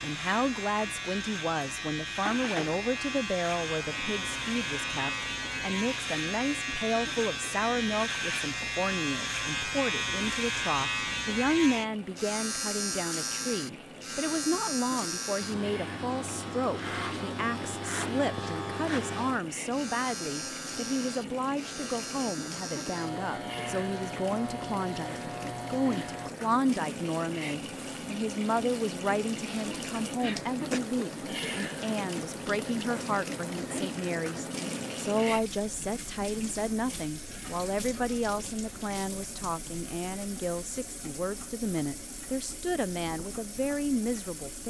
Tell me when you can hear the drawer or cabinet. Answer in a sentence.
You can't hear the drawer or cabinet here.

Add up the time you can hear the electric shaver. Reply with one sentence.
You can hear the electric shaver for 26 seconds altogether.